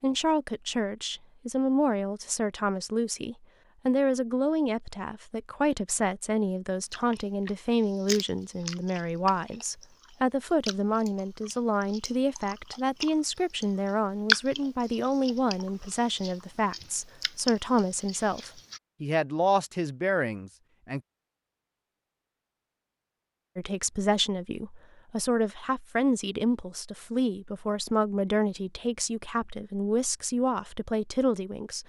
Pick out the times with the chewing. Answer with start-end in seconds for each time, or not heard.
6.9-18.8.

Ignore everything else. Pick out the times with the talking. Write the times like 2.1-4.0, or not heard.
0.0-21.0, 23.6-31.8.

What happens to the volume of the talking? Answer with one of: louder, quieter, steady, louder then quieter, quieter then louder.
steady.